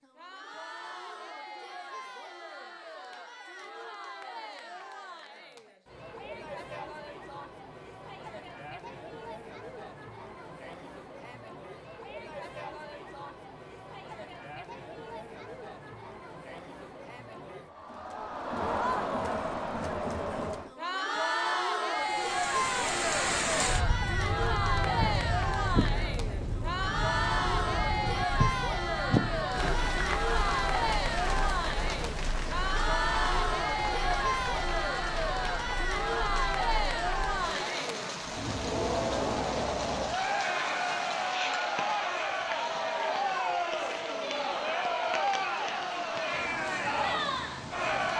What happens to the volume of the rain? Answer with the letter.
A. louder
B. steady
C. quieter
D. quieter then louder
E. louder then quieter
C.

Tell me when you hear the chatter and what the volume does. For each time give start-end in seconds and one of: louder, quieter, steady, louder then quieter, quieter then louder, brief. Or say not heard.
0.0-48.1 louder.